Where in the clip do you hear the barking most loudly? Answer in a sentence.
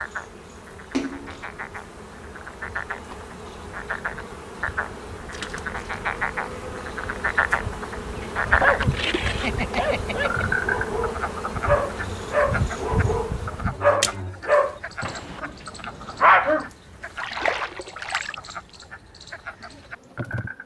The loudest moment of the barking is at 16 seconds.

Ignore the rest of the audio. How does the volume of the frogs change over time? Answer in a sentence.
The volume of the frogs goes up, then down.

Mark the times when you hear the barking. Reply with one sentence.
The barking can be heard from 8.4 to 16.6 s.